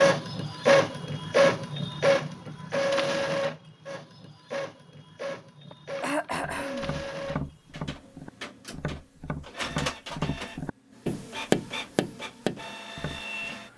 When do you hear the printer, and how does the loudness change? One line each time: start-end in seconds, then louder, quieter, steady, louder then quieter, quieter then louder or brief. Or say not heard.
0.0-13.7 quieter.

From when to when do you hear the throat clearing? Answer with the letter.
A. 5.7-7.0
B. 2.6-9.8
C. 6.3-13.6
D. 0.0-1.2
A.